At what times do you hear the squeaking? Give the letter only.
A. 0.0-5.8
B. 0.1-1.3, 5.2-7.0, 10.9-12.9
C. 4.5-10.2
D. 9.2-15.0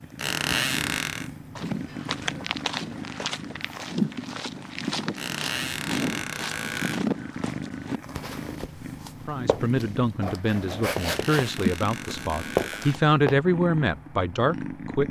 B.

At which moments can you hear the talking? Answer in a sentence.
The talking can be heard from 9.2 to 15.0 s.